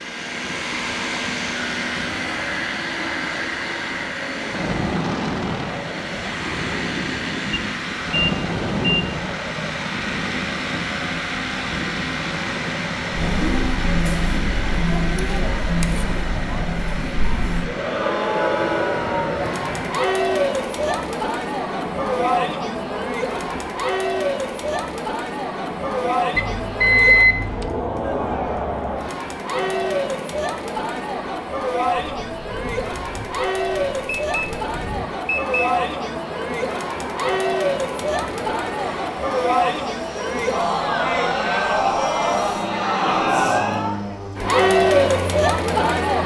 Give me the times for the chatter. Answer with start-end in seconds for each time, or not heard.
13.1-46.2.